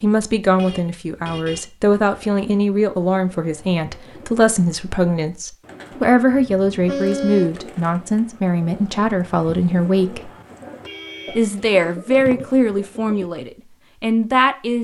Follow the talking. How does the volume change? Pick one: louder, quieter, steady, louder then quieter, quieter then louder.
steady.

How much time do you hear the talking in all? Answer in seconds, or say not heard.
14 s.